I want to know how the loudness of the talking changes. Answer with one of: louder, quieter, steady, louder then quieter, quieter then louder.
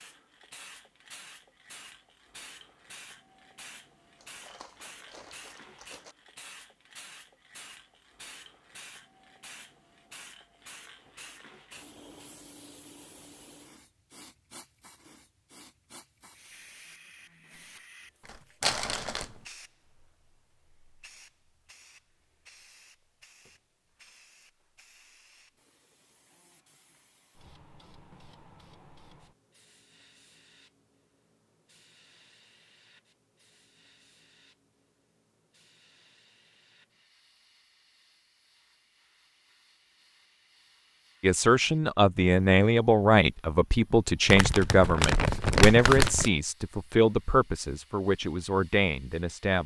quieter.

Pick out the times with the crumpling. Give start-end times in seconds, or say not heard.
4.2-6.2, 18.2-19.3, 44.2-46.3.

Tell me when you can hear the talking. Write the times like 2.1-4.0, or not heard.
41.2-49.6.